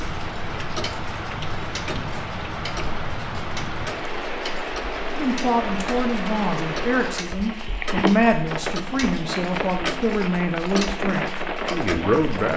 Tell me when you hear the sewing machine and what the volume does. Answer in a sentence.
You can't hear the sewing machine here.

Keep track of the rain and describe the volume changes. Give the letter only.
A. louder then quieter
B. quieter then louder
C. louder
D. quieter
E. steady
E.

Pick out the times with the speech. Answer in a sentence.
You can hear the speech from 5.2 to 12.5 s.